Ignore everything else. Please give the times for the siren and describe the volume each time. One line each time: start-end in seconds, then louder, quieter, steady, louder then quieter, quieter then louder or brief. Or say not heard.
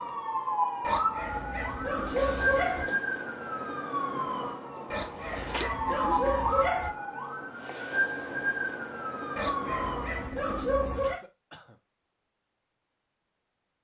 0.0-10.3 steady.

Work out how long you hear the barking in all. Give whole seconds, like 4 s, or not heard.
6 s.